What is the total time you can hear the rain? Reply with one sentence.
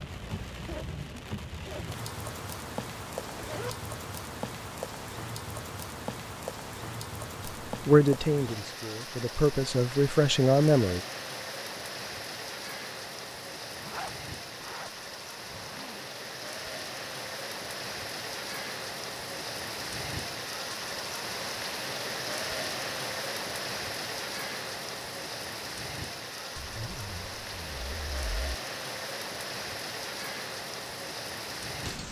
The rain can be heard for 32 seconds in total.